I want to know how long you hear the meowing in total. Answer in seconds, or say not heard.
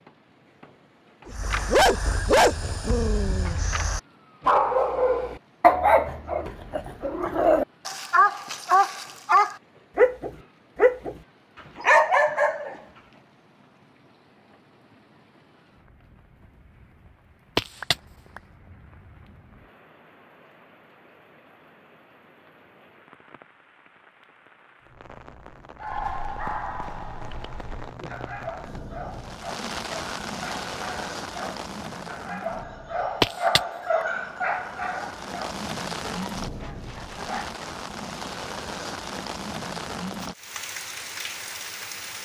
2 s.